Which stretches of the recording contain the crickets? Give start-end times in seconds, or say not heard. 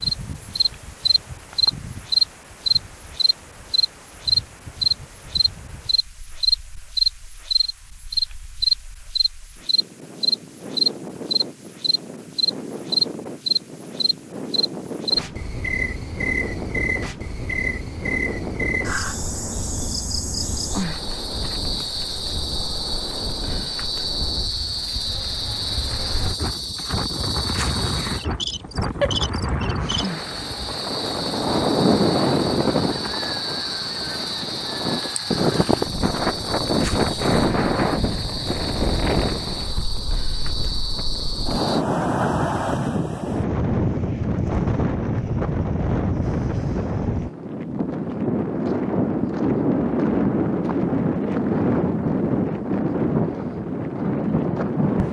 0.0-41.9.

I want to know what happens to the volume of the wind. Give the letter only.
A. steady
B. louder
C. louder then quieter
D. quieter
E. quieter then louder
B.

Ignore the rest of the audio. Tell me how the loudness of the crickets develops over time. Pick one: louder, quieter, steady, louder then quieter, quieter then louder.
quieter.